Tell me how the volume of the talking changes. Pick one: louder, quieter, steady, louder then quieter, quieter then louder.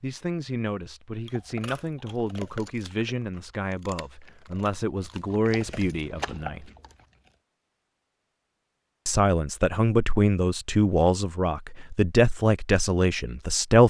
louder.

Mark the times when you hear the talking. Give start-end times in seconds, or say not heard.
0.0-6.7, 9.1-13.8.